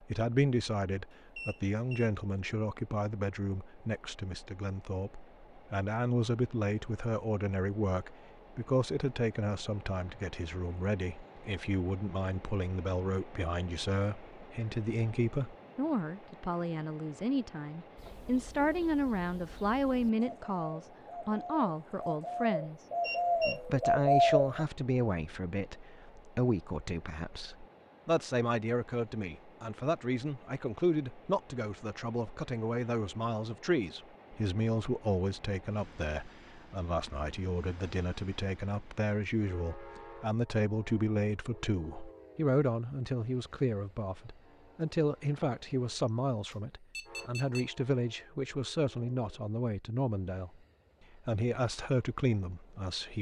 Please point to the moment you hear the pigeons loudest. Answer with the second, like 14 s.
24 s.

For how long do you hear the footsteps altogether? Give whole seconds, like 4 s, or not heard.
not heard.